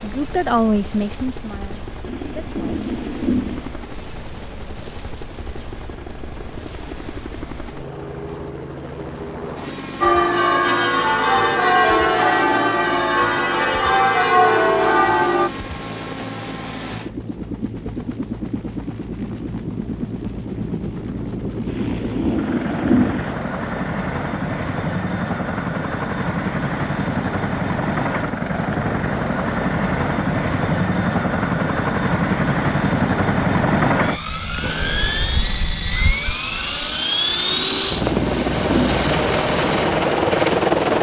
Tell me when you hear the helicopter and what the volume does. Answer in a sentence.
You can hear the helicopter from 0.0 to 40.9 s, getting louder.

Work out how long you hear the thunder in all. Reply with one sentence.
You can hear the thunder for 5 seconds altogether.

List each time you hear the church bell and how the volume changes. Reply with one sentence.
You can hear the church bell from 10.0 to 15.5 s, at a steady volume.